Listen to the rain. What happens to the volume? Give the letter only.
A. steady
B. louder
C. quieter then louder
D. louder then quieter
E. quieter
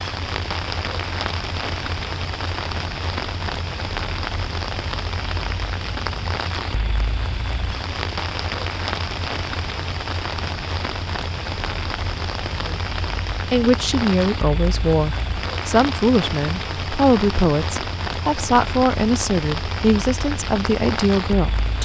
A.